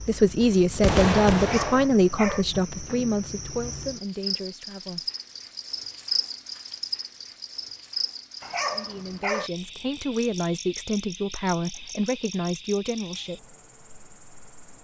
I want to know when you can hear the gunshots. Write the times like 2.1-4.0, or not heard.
0.4-1.9.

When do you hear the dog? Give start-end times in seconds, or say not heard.
1.4-2.5, 8.4-9.5.